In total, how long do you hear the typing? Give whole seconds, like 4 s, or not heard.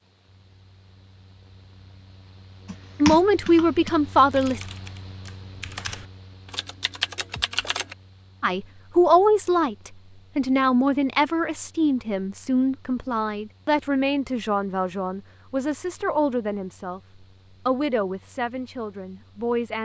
5 s.